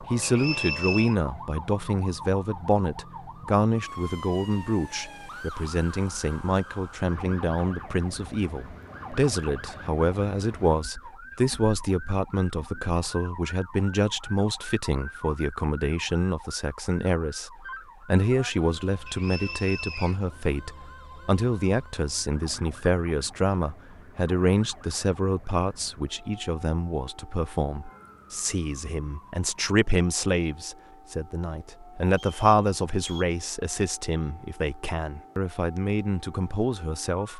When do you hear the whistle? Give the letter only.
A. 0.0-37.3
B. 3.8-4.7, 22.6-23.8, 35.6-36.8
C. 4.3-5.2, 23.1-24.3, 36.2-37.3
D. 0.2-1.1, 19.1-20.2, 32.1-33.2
D.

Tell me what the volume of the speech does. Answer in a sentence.
The loudness of the speech stays about the same.